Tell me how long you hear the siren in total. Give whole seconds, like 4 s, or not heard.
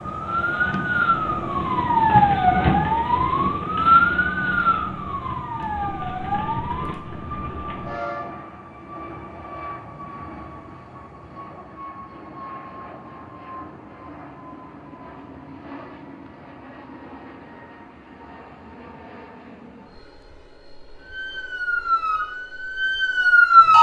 11 s.